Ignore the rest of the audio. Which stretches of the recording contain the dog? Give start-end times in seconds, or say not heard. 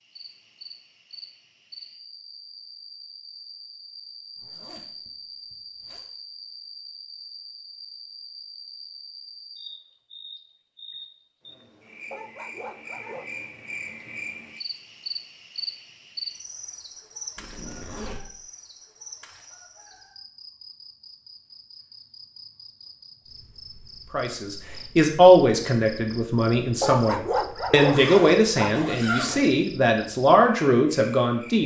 12.1-13.4, 26.8-28.8.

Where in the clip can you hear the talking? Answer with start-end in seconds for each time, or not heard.
24.1-31.6.